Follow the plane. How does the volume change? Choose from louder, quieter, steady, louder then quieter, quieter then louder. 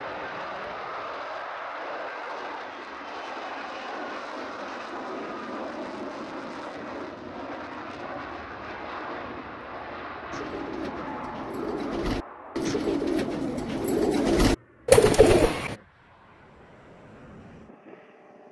quieter.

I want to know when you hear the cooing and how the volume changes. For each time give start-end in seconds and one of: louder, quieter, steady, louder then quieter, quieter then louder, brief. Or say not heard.
10.3-15.8 louder.